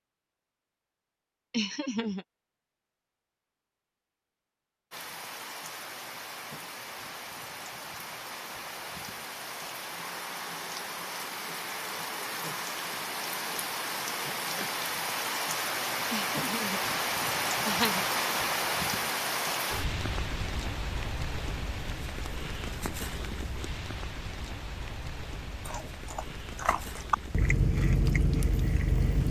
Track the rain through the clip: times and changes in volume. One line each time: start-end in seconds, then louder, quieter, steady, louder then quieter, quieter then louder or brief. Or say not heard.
4.9-29.2 louder then quieter.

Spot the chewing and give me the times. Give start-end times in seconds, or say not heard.
25.6-29.2.